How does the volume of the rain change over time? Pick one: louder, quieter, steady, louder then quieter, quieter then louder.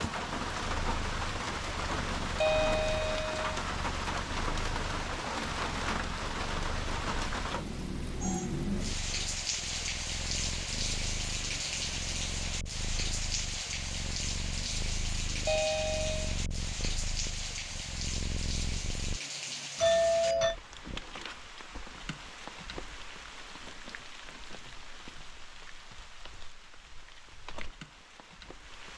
quieter.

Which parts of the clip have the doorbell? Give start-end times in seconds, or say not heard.
2.4-3.5, 15.4-16.2, 19.8-20.6.